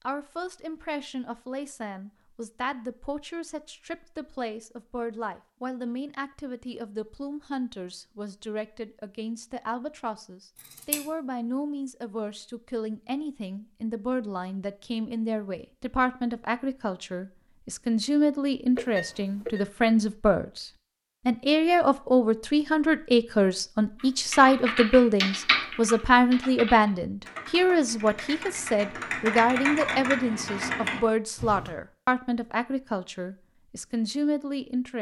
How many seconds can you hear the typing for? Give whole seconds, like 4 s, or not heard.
8 s.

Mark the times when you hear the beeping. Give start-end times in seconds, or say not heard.
18.8-19.6.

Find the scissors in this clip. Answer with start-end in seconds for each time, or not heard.
10.6-11.0.